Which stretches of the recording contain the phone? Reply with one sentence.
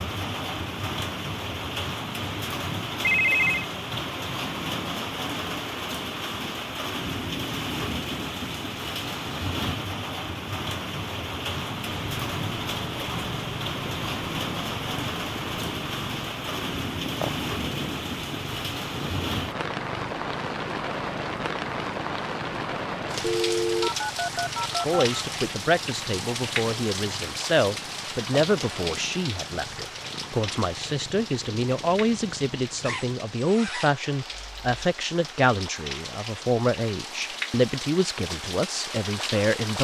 The phone can be heard from 3.0 to 3.6 s and from 23.2 to 25.2 s.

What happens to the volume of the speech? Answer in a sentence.
The loudness of the speech stays about the same.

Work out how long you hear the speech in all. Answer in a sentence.
You can hear the speech for 15 seconds altogether.